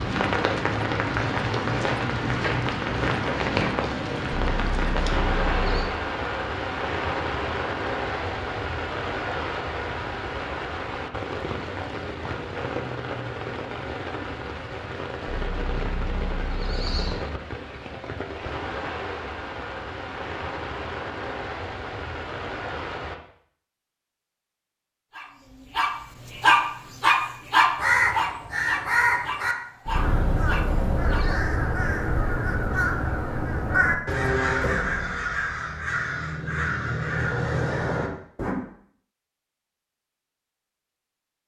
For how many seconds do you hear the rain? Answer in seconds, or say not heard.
23 s.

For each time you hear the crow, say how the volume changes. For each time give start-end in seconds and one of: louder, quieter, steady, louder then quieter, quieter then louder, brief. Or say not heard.
27.8-38.5 steady.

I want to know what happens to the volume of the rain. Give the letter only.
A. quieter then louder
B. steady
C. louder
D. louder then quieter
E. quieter
E.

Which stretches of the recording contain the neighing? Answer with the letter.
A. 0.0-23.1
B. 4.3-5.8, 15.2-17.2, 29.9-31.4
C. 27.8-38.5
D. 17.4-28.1
B.